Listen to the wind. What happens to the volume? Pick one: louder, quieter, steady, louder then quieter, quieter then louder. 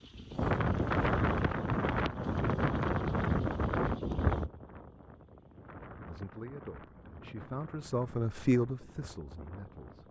quieter.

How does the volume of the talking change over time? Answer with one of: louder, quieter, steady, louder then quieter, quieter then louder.
louder then quieter.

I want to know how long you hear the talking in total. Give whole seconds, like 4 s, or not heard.
4 s.